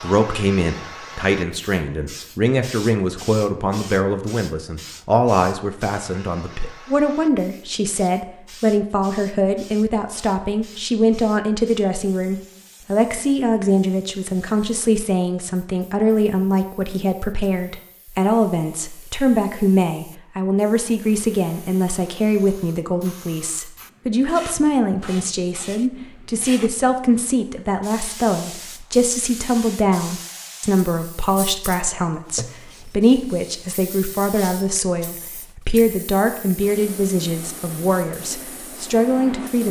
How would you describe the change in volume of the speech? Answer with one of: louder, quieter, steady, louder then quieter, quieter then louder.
steady.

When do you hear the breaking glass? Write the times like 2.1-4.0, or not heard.
not heard.